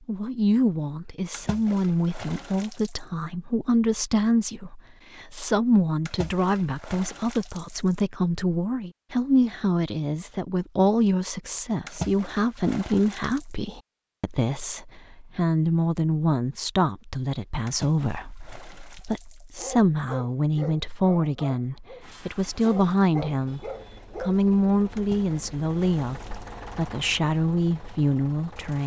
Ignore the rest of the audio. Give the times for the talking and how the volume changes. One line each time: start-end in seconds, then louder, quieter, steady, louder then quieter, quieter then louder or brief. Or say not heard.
0.1-28.8 steady.